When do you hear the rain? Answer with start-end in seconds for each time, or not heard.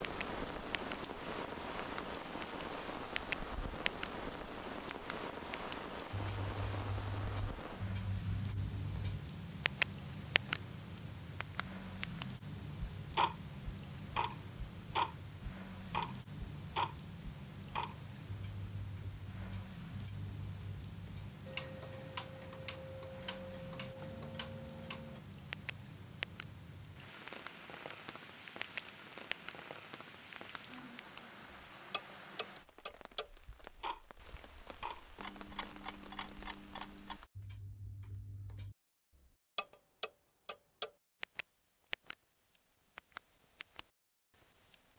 0.0-37.3.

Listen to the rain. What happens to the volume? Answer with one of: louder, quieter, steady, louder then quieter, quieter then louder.
quieter.